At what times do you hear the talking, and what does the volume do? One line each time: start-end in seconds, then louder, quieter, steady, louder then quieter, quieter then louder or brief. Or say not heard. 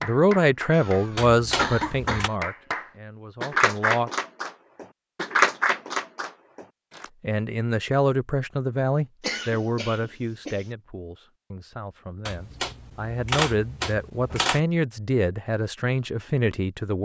0.0-4.1 quieter
7.2-17.0 quieter then louder.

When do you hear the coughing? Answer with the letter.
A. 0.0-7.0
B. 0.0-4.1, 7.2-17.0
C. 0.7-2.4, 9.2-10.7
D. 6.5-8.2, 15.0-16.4
C.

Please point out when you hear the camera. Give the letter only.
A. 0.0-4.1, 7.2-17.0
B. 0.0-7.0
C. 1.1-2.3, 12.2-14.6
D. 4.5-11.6
C.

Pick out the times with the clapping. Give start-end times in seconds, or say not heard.
0.0-7.0.